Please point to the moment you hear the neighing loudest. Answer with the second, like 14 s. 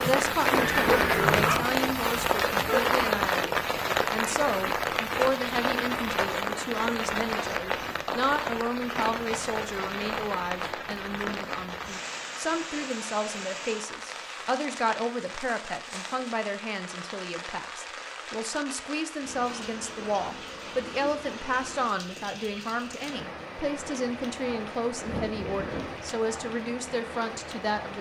1 s.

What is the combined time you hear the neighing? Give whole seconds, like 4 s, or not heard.
2 s.